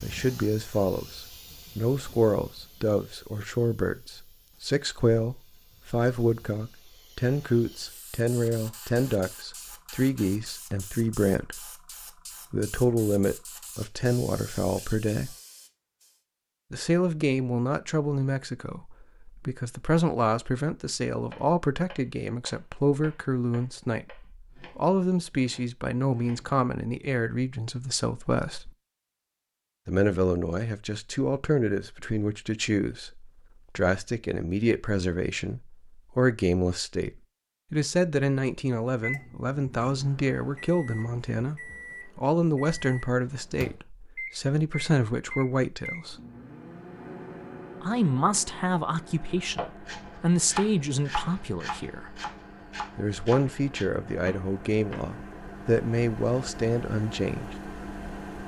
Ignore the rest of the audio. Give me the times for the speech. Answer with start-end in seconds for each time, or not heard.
0.0-11.7, 12.5-15.3, 16.7-28.7, 29.9-46.1, 47.8-52.2, 53.0-57.5.